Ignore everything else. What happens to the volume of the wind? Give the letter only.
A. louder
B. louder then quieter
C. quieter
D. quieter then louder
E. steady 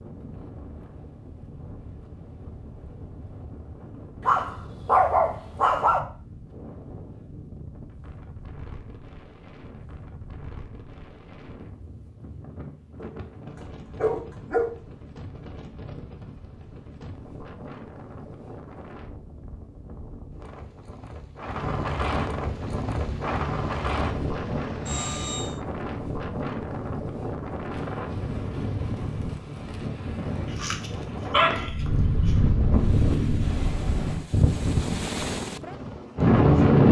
A.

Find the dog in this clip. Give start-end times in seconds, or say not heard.
4.2-6.0, 12.9-14.8, 30.6-32.3.